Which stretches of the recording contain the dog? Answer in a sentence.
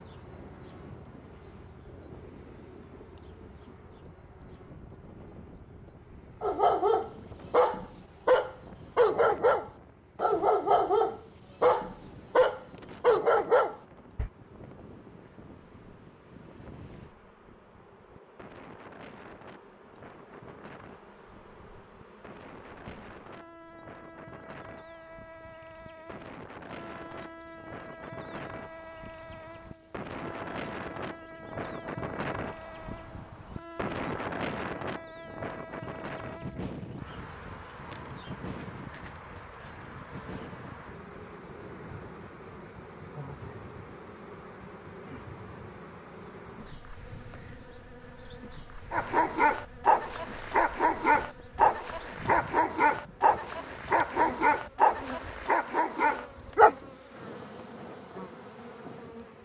The dog can be heard from 6.4 to 14.3 s and from 48.9 to 56.8 s.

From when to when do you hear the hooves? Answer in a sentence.
You can't hear the hooves here.